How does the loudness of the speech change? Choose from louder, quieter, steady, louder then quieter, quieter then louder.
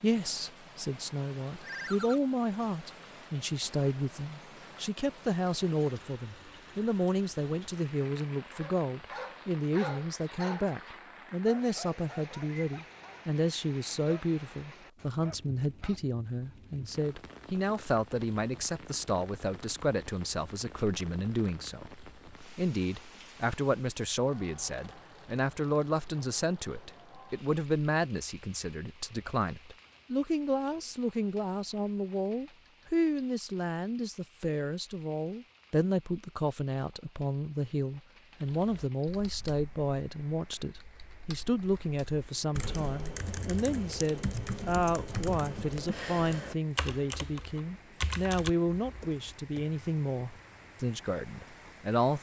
steady.